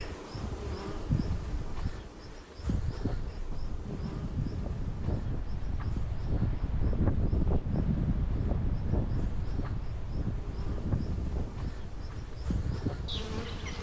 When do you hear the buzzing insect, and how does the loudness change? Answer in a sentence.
You can hear the buzzing insect from 0.0 to 13.7 s, getting quieter then louder.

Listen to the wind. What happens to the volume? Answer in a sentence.
The volume of the wind goes up, then down.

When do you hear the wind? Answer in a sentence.
The wind can be heard from 0.0 to 13.7 s.